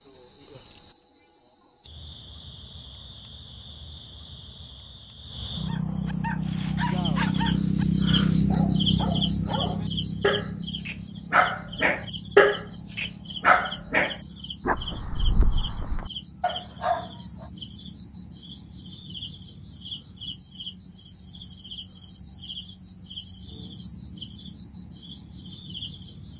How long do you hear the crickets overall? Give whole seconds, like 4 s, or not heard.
26 s.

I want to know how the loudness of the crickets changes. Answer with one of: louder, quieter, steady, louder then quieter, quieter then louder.
louder then quieter.